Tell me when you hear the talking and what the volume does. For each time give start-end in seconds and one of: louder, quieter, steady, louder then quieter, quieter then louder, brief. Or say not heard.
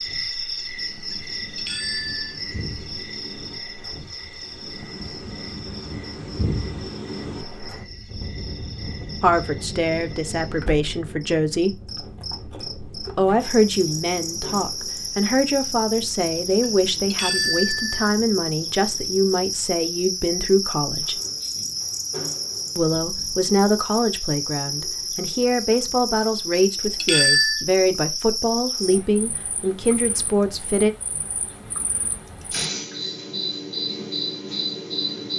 9.2-11.8 brief
13.2-21.2 steady
22.8-30.9 steady.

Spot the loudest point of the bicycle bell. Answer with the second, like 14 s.
27 s.